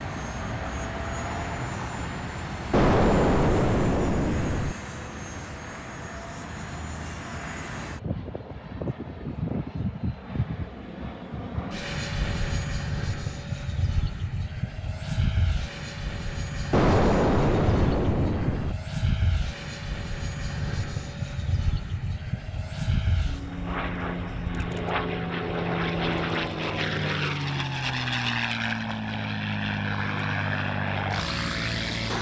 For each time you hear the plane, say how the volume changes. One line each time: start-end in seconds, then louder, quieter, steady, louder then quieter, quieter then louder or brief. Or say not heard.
0.0-32.1 louder.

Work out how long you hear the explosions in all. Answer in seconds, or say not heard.
4 s.